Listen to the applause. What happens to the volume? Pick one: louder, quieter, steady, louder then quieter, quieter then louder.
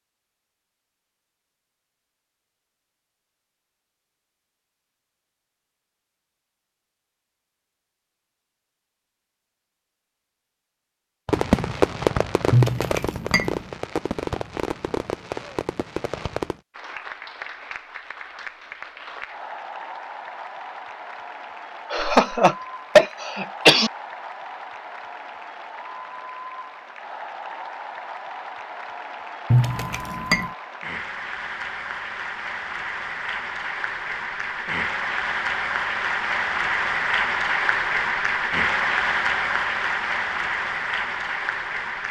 louder.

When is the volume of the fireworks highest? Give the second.
12 s.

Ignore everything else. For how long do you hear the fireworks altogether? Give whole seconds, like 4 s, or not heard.
5 s.